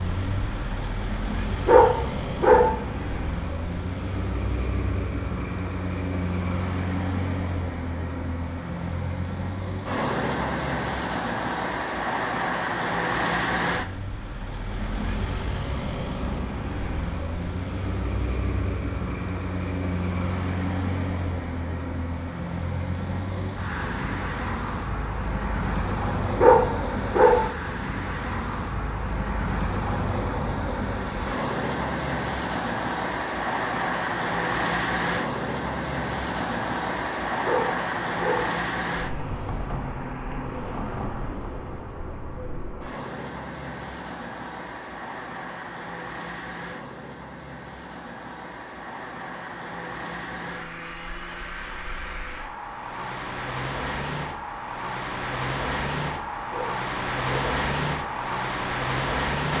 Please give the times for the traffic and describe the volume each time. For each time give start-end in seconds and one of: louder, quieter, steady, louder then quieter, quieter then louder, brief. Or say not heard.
0.0-59.5 steady.